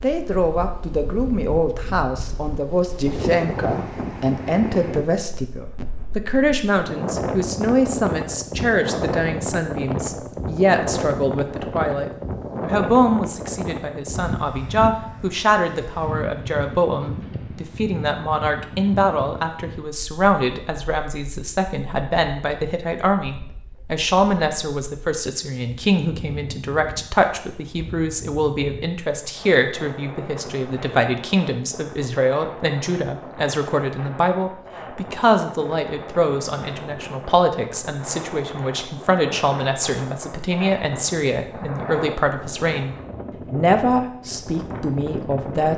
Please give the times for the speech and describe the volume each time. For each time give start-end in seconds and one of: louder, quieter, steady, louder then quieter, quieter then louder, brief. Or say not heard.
0.0-45.7 steady.